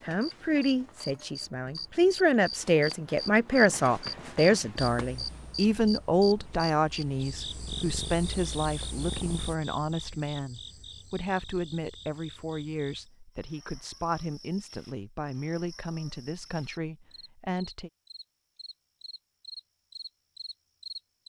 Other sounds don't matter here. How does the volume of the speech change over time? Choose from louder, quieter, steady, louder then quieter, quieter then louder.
quieter.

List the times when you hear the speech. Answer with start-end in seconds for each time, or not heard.
0.0-17.9.